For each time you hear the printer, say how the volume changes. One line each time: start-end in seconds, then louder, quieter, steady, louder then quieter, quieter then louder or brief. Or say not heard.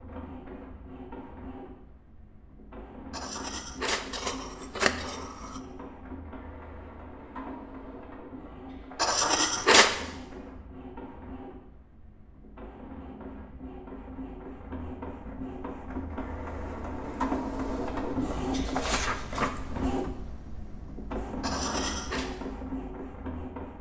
0.0-23.7 louder.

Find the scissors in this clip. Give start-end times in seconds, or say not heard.
3.1-5.6, 8.9-9.9, 21.4-22.2.